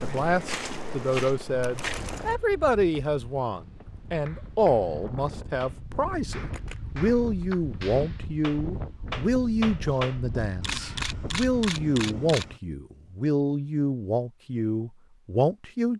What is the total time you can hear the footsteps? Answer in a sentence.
The footsteps can be heard for 2 seconds in total.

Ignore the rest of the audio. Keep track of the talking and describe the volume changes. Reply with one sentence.
The loudness of the talking stays about the same.